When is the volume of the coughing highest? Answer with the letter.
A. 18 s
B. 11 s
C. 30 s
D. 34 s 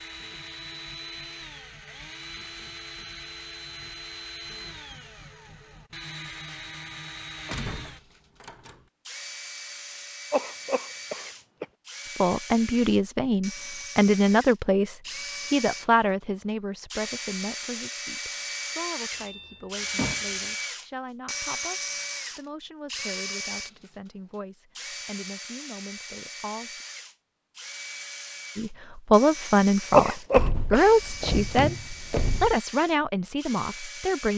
C.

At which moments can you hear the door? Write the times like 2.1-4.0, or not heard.
7.5-8.8, 19.1-20.4, 30.3-32.6.